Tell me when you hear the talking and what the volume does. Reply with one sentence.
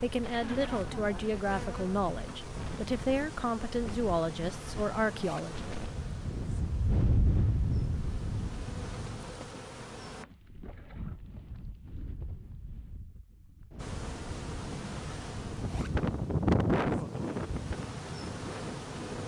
You can hear the talking from 0.0 to 5.8 s, at a steady volume.